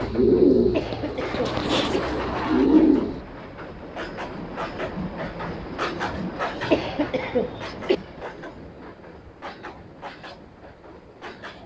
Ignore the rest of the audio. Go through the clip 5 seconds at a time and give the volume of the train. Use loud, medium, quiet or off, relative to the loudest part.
loud, loud, medium.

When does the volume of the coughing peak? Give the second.
7 s.